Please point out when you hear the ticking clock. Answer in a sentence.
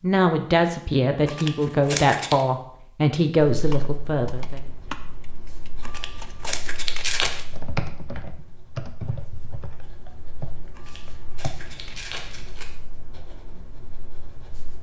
The ticking clock can't be heard in this clip.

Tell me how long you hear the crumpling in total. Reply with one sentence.
The crumpling can be heard for 5 seconds in total.